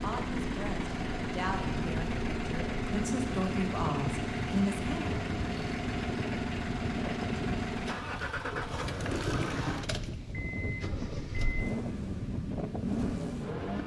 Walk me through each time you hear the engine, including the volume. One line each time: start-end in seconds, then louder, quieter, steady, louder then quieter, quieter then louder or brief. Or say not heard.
0.0-13.8 steady.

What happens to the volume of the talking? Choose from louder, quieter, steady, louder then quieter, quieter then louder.
louder.